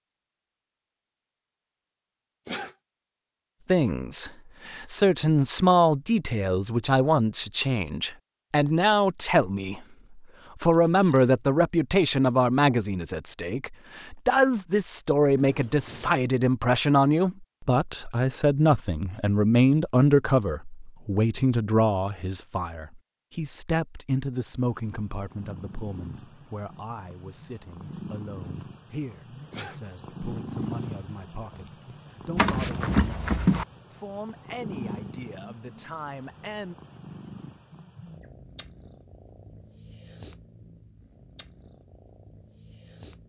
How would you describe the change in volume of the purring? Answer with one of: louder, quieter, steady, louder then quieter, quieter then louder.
louder then quieter.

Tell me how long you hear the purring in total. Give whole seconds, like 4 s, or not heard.
19 s.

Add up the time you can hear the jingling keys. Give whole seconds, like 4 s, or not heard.
3 s.